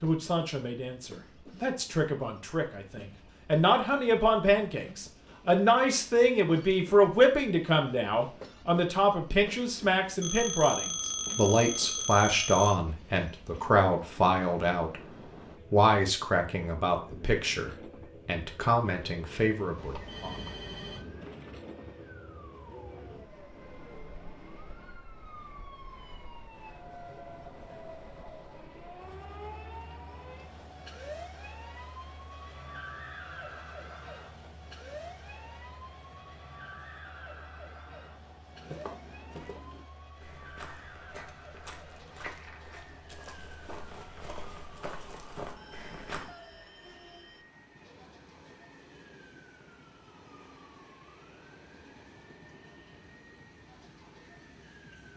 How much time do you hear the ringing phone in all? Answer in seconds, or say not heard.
6 s.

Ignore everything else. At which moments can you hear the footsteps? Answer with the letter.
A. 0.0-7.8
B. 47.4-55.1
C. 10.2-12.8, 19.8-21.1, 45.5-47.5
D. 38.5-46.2
D.